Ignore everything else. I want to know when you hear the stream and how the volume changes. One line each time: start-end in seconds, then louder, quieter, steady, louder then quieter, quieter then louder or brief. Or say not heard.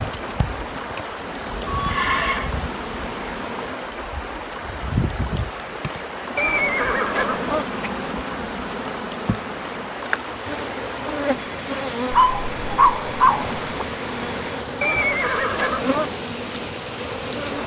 0.0-17.6 steady.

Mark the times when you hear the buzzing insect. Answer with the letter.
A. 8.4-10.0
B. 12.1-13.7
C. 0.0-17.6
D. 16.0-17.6
C.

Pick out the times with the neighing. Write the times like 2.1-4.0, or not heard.
1.6-2.5, 6.3-7.7, 14.8-16.1.